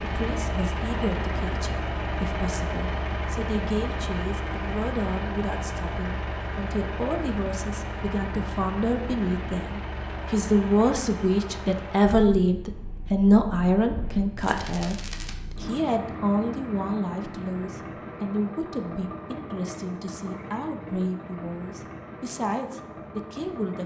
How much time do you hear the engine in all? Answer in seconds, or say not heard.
24 s.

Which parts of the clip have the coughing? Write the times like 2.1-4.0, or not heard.
not heard.